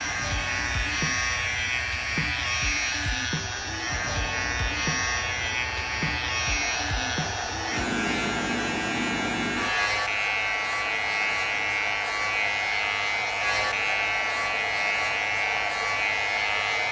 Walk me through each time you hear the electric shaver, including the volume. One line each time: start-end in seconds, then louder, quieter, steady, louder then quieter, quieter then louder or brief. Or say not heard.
0.0-16.8 steady.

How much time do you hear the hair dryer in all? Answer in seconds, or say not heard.
17 s.